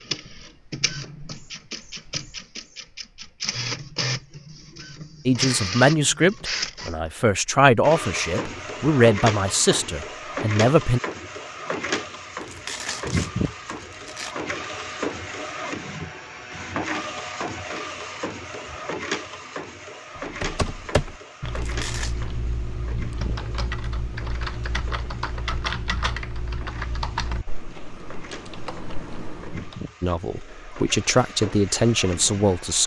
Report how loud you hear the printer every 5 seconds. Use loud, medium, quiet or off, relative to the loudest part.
loud, loud, loud, loud, medium, quiet, medium.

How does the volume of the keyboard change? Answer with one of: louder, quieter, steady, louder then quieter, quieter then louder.
quieter.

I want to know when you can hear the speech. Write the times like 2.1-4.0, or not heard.
5.2-11.0, 30.0-32.8.